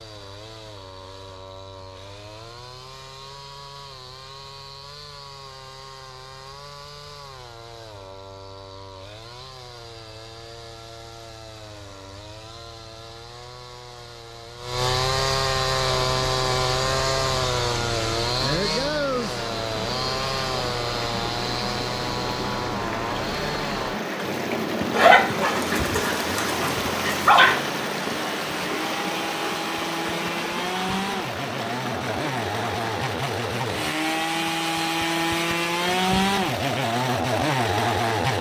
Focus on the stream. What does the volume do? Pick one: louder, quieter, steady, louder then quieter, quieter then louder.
louder then quieter.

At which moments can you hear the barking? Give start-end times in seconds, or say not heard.
24.9-27.6.